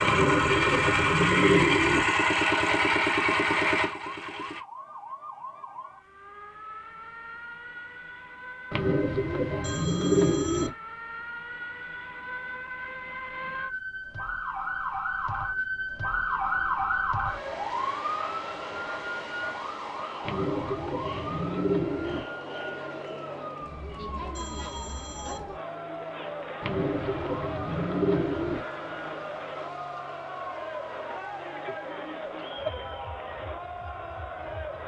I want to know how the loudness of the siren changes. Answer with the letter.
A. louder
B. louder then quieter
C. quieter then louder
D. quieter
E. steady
B.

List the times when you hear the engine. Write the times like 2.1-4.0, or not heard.
0.0-4.7.